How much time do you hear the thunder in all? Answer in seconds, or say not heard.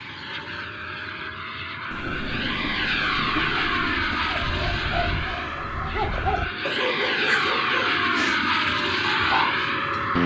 2 s.